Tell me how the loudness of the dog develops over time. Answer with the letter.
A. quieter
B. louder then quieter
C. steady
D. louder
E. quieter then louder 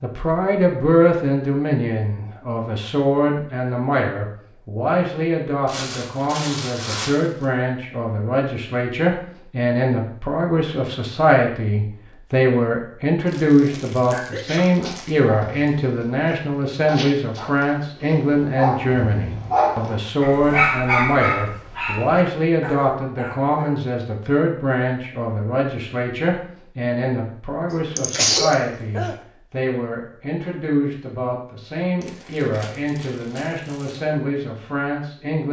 B.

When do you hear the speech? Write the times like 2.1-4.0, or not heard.
0.0-35.4.